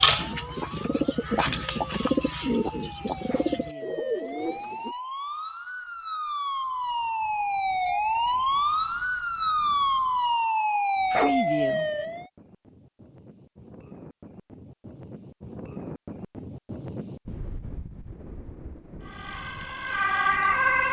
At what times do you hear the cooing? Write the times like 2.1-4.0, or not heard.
0.0-5.0.